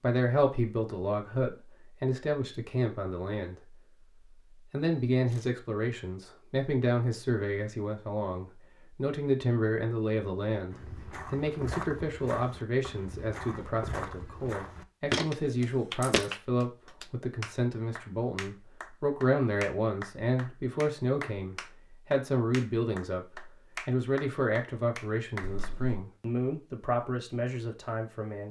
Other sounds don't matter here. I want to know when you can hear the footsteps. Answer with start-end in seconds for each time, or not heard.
10.7-16.3.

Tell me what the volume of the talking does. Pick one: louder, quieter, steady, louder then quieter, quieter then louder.
steady.